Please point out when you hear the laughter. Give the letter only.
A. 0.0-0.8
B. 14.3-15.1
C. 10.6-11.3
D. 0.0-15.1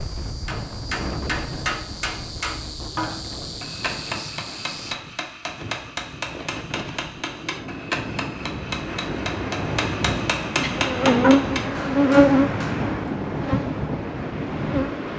C.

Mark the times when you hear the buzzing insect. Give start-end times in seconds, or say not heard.
0.0-5.0, 10.8-15.1.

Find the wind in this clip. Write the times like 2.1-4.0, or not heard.
0.0-15.1.